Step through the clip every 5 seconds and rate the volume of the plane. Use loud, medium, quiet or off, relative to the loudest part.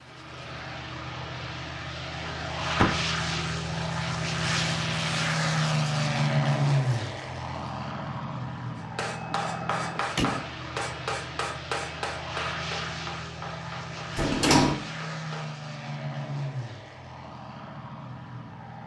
loud, loud, medium, medium.